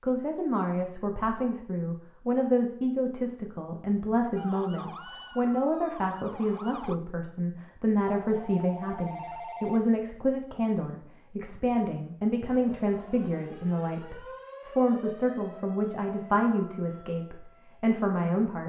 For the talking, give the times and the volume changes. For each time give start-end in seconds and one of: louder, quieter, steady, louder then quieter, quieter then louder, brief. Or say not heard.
0.0-18.6 steady.